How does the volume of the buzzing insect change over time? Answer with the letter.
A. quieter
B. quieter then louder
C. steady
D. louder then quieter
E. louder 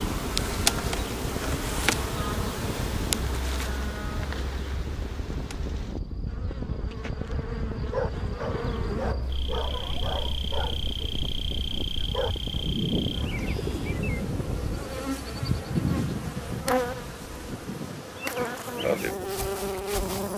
B.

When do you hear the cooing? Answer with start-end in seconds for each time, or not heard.
12.7-14.4.